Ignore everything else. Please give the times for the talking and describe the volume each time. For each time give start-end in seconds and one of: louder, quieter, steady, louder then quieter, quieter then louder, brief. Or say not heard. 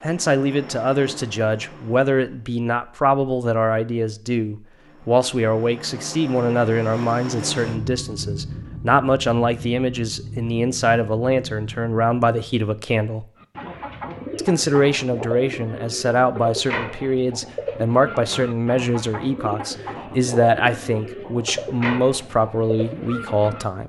0.0-13.2 steady
14.3-23.8 steady.